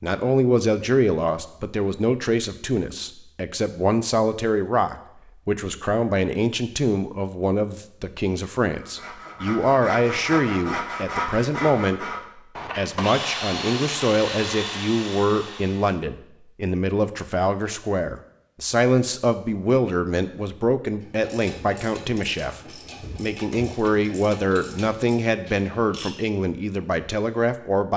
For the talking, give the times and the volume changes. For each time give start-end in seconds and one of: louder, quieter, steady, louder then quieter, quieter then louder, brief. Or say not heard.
0.0-27.9 steady.